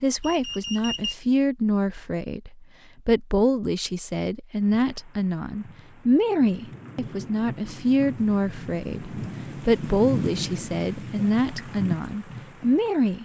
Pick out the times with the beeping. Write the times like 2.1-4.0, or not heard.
0.2-1.1.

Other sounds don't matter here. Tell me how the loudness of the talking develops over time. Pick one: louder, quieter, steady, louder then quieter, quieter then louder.
steady.